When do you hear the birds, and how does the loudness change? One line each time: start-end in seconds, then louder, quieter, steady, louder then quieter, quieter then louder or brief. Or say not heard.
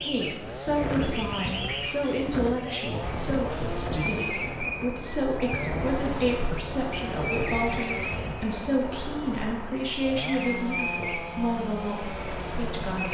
0.0-13.1 steady.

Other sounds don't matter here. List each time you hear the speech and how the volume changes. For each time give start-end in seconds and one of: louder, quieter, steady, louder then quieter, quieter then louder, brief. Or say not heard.
0.0-13.1 steady.